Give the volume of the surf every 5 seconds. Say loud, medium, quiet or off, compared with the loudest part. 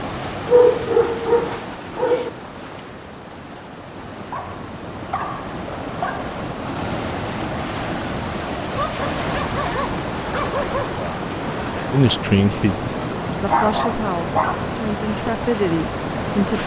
medium, loud, loud, loud.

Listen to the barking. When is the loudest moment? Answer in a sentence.
The volume of the barking peaks at 1 second.